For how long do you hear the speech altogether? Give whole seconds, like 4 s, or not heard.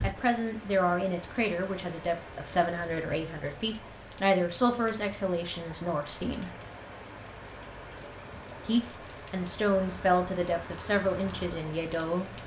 10 s.